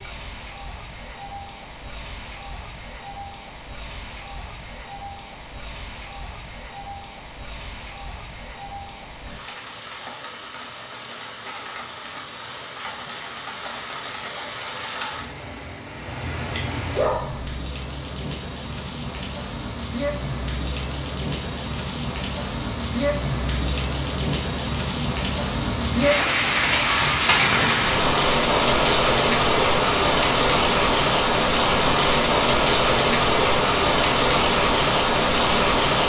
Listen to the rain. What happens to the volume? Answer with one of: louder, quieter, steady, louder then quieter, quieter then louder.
louder.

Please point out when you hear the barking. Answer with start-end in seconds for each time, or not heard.
16.9-17.6.